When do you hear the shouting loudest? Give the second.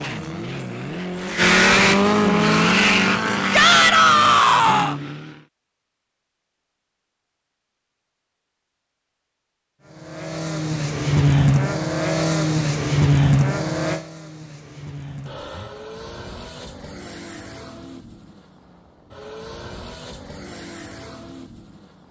4 s.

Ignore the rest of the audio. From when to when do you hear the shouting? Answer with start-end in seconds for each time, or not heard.
3.5-5.0.